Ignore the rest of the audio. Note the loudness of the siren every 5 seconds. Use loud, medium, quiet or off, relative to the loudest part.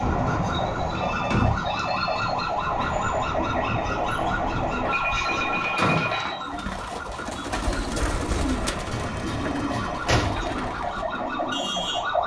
loud, medium, loud.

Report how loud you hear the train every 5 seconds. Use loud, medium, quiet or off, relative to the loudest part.
loud, loud, medium.